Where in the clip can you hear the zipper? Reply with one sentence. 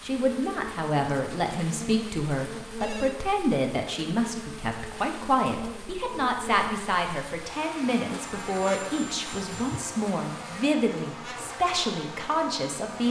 The zipper can't be heard in this clip.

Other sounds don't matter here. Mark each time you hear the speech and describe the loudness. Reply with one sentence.
You can hear the speech from 0.0 to 13.0 s, at a steady volume.